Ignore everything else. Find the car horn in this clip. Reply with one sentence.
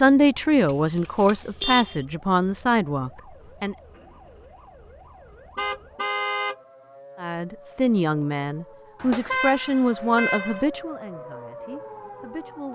The car horn can be heard from 0.7 to 2.0 s, from 5.5 to 6.5 s and from 8.9 to 10.7 s.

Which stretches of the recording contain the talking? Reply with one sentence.
The talking can be heard from 0.0 to 3.8 s and from 7.2 to 12.6 s.